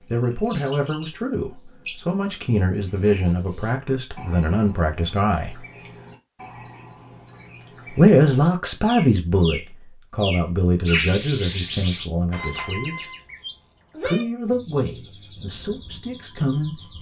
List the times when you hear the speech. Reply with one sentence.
The speech can be heard from 0.1 to 5.5 s, from 8.0 to 13.1 s and from 14.1 to 16.9 s.